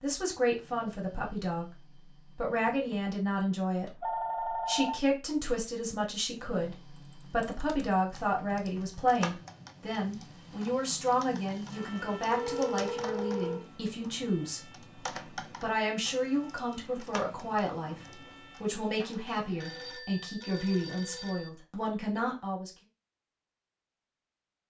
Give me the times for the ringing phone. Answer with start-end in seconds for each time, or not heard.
3.9-5.0, 12.2-13.6, 19.6-21.5.